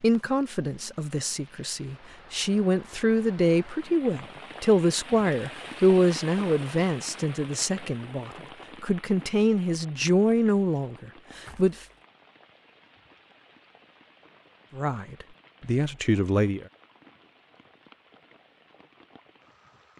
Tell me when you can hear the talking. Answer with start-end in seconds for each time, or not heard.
0.0-11.8, 14.8-16.6.